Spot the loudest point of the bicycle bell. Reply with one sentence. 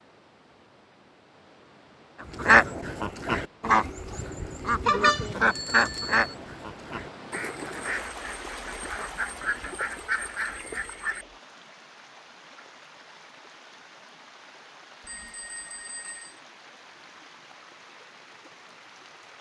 The loudest moment of the bicycle bell is at 5 seconds.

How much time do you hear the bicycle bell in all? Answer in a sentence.
You can hear the bicycle bell for 3 seconds altogether.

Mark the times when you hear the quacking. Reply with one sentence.
The quacking can be heard from 2.2 to 11.2 s.